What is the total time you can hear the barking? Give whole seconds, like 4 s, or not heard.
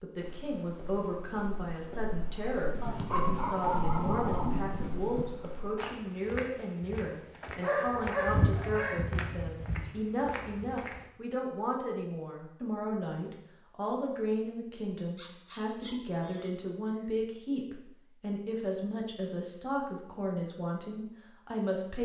5 s.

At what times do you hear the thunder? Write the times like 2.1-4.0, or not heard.
2.7-5.4.